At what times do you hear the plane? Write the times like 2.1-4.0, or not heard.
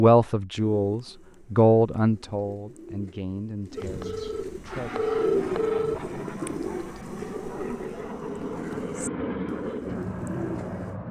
4.7-11.0.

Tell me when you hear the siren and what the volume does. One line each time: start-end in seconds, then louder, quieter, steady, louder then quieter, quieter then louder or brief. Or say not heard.
not heard.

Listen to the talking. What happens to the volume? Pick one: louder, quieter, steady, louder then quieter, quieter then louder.
louder then quieter.